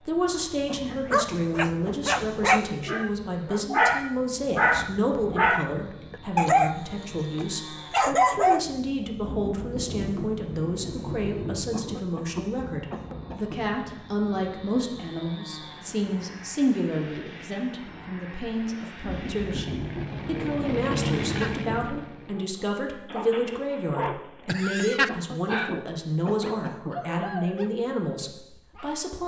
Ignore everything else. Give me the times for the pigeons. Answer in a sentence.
You can't hear the pigeons here.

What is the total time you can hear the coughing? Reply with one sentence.
You can hear the coughing for 5 seconds altogether.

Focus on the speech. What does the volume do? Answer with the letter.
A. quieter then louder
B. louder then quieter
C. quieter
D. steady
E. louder
D.